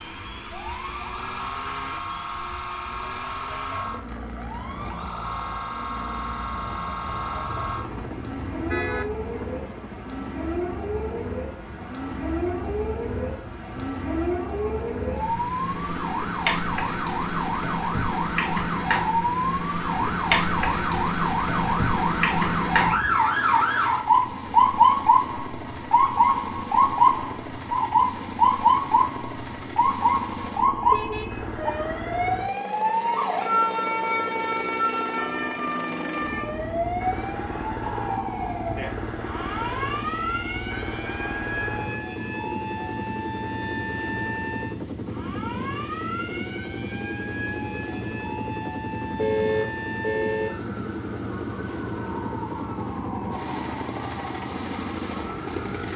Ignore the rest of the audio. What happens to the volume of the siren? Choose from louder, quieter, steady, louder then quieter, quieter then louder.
louder then quieter.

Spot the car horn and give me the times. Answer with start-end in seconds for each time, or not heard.
7.0-9.1, 30.9-31.4, 49.1-50.5.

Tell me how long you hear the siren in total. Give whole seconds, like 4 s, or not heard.
56 s.